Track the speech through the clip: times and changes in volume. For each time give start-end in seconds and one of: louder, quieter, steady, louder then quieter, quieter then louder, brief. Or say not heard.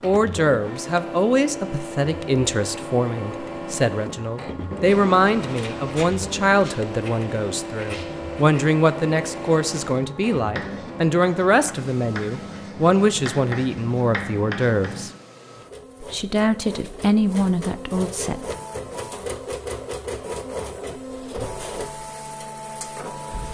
0.0-15.1 steady
16.0-18.6 brief.